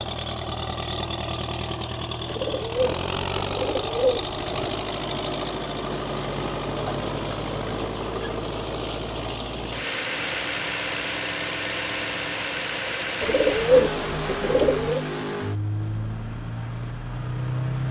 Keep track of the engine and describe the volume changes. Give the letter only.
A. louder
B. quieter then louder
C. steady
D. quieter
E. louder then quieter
C.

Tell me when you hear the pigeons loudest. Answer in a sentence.
The volume of the pigeons peaks at 14 seconds.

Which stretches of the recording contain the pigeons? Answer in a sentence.
You can hear the pigeons from 2.2 to 4.7 s and from 13.2 to 15.0 s.